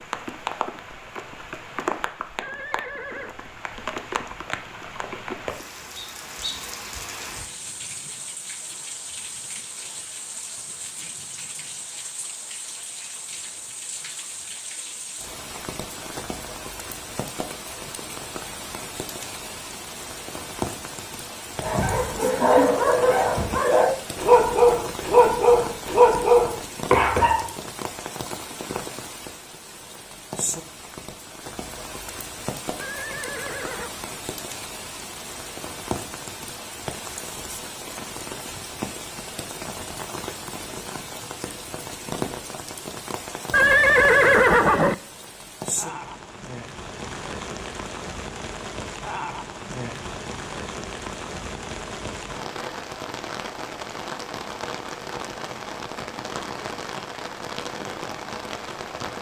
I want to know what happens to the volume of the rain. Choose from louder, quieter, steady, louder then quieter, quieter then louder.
steady.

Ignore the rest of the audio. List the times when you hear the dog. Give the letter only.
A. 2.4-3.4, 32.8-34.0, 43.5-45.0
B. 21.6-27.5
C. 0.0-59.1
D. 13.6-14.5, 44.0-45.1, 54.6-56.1
B.